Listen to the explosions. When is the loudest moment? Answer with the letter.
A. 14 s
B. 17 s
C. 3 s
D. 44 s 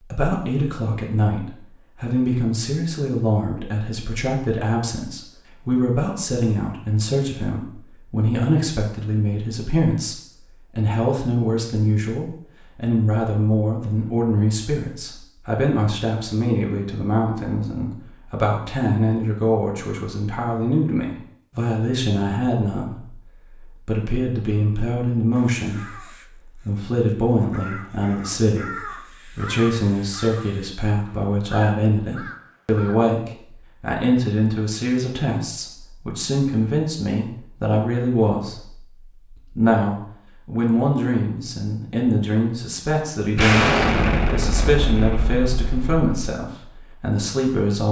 D.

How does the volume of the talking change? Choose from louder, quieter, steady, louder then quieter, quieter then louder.
steady.